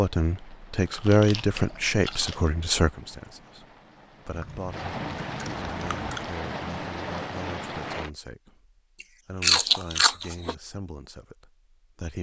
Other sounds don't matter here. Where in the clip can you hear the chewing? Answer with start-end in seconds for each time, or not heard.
0.7-2.4, 4.3-6.3, 9.0-10.6.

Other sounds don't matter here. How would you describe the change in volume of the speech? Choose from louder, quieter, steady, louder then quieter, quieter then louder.
quieter.